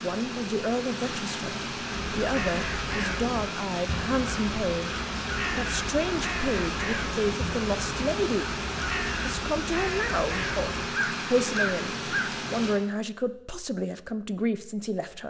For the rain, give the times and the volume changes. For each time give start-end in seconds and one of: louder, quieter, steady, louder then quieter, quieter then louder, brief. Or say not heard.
0.0-12.8 steady.